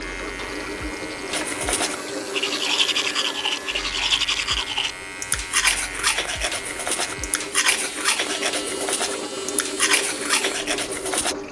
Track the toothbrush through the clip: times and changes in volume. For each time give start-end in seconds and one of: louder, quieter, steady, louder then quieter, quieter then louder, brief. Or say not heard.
1.2-11.3 steady.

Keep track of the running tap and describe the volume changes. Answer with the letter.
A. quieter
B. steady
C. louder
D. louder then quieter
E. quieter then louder
E.